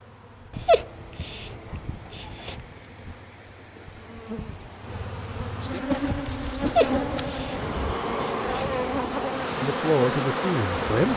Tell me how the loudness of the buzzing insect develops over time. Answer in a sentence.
The loudness of the buzzing insect goes up.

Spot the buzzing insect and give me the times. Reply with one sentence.
You can hear the buzzing insect from 0.0 to 11.1 s.